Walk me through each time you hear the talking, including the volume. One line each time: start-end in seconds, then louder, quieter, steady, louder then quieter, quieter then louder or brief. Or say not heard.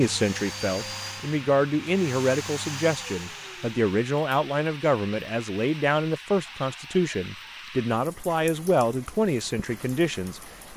0.0-10.7 steady.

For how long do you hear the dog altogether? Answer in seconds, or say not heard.
not heard.